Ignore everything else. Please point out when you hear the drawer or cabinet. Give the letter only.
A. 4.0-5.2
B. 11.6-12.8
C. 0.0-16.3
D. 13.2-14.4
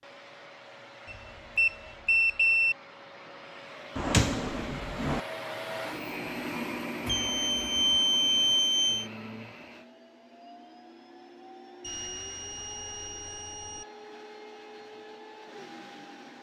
A.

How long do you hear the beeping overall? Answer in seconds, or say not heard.
6 s.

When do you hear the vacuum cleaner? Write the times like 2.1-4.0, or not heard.
0.0-16.3.